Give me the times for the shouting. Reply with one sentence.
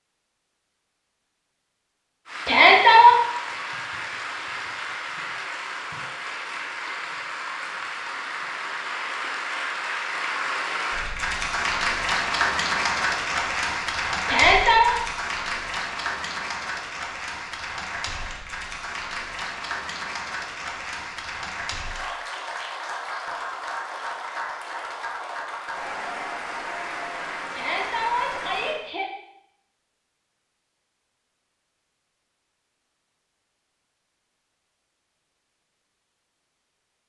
The shouting can be heard from 2.5 to 3.1 s, from 14.2 to 14.9 s and from 27.5 to 29.1 s.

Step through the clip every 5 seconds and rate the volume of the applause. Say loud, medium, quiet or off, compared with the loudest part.
medium, medium, loud, medium, medium, medium, off, off.